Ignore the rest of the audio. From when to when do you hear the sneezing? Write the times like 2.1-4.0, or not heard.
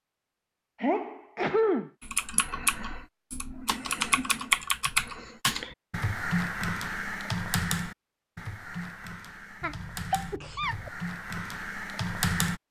0.8-1.9, 9.6-10.9.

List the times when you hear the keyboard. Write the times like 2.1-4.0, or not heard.
2.0-12.6.